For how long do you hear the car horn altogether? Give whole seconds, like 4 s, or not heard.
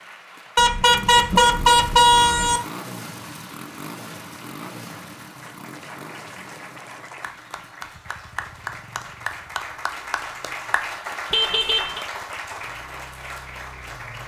3 s.